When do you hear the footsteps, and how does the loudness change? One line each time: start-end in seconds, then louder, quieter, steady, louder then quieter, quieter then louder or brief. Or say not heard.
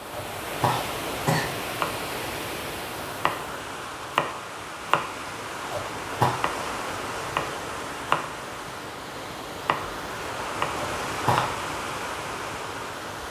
not heard.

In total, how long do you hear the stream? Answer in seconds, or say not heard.
13 s.